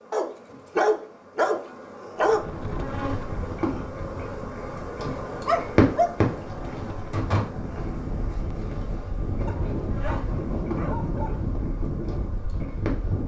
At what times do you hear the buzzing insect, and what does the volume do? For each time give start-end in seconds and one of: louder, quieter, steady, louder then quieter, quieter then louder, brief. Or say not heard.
0.0-13.2 louder then quieter.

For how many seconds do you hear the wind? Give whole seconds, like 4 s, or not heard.
11 s.